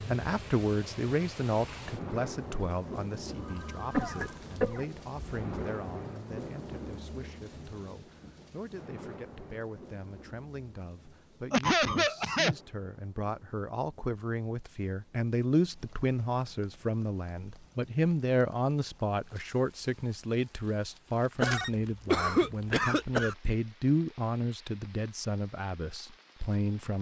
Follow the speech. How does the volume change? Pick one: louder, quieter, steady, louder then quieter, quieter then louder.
quieter then louder.